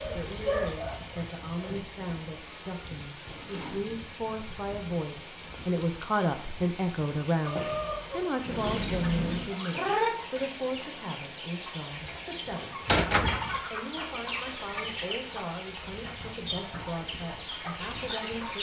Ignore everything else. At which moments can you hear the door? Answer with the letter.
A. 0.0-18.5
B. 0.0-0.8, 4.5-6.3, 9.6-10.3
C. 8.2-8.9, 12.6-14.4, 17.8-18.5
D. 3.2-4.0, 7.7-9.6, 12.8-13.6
D.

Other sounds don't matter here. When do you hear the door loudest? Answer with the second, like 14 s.
13 s.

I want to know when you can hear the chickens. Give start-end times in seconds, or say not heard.
0.0-1.9, 7.5-18.5.